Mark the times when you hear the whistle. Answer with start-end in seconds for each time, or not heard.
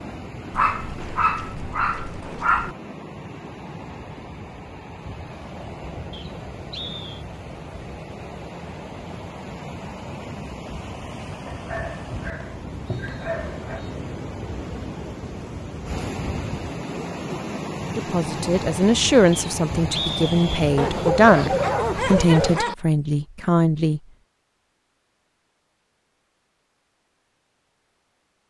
6.1-7.2, 12.4-13.9, 19.3-20.6.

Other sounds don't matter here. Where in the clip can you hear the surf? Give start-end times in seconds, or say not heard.
0.0-22.6.